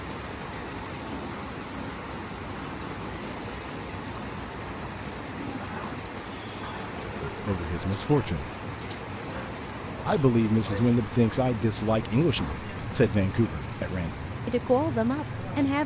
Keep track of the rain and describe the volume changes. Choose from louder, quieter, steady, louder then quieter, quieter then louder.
steady.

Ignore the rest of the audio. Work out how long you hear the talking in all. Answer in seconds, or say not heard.
7 s.